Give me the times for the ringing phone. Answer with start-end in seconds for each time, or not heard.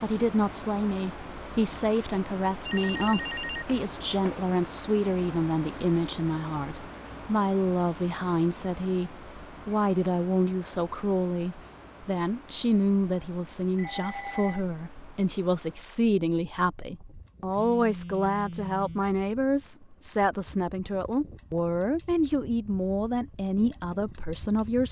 2.6-4.5, 13.8-14.7, 17.5-19.1.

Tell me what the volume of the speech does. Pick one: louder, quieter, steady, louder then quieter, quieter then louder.
steady.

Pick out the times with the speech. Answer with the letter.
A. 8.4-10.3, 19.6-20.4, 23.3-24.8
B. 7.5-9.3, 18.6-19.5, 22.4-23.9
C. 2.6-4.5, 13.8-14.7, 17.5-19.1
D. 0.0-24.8
D.